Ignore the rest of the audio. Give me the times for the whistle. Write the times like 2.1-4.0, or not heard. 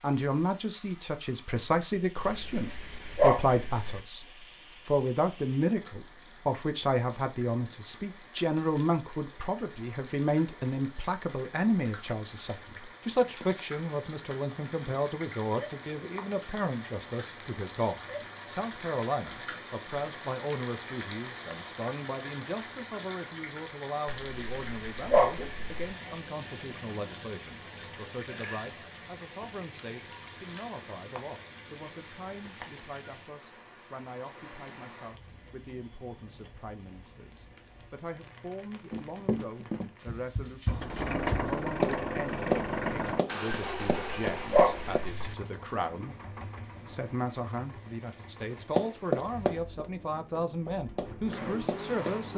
not heard.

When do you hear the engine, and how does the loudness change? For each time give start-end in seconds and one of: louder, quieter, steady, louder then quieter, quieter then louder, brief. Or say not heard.
40.6-52.3 quieter then louder.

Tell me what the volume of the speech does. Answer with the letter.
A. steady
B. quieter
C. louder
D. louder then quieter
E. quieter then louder
E.